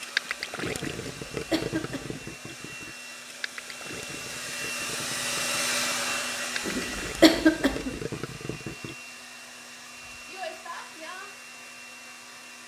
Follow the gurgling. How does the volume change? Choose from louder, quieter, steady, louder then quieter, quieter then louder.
quieter then louder.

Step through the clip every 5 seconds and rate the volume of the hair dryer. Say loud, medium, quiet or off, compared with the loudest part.
medium, loud, medium.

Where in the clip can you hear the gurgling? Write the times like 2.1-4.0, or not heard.
0.0-8.9.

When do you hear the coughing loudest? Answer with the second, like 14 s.
7 s.